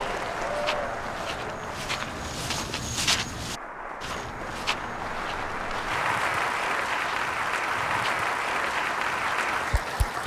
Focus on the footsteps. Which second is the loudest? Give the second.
3 s.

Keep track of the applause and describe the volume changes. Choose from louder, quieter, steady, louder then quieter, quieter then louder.
quieter then louder.